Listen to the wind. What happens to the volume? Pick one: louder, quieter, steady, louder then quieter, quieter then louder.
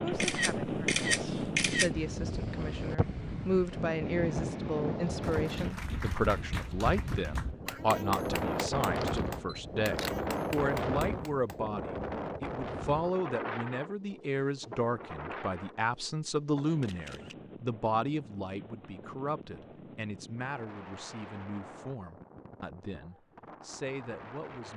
quieter.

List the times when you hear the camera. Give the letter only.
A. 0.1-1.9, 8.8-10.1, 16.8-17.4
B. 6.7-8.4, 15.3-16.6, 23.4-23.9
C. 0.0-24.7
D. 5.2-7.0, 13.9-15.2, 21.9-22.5
A.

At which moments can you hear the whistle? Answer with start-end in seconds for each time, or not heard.
not heard.